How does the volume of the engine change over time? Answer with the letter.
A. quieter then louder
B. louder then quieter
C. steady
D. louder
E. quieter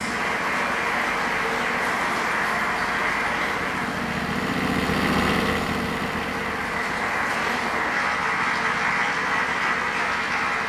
B.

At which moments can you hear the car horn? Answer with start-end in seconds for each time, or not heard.
not heard.